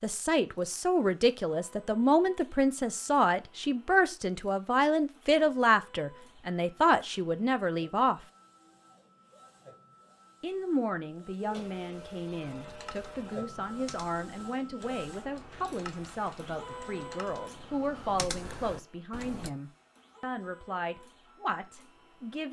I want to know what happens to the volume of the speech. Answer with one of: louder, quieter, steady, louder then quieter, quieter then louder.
quieter.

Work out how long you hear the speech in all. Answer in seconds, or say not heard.
20 s.